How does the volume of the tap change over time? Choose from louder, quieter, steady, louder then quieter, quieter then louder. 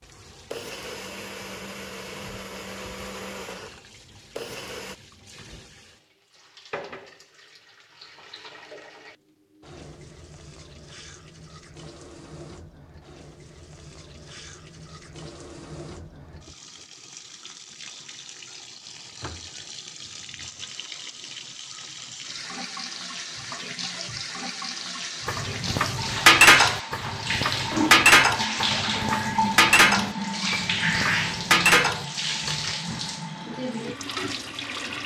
louder.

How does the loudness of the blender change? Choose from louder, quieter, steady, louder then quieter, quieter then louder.
steady.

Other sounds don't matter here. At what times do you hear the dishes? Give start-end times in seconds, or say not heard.
25.2-32.8.